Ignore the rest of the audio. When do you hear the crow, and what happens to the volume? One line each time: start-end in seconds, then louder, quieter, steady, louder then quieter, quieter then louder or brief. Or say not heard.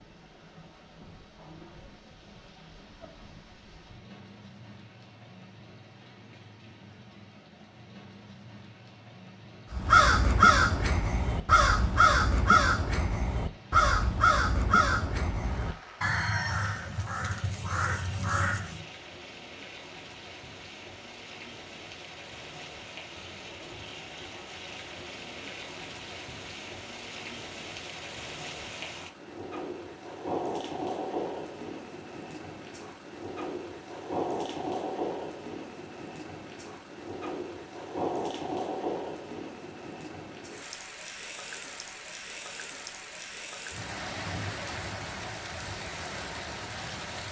9.7-18.9 quieter.